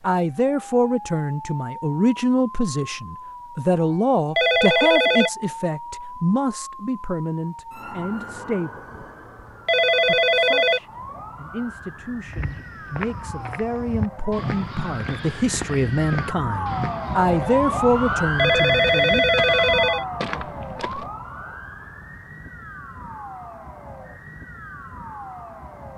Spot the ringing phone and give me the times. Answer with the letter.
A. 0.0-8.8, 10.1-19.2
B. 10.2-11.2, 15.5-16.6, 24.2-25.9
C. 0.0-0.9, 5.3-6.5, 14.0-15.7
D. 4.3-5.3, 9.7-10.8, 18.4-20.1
D.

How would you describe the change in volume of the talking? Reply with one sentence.
The loudness of the talking goes down, then up.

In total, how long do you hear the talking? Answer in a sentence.
The talking can be heard for 18 seconds in total.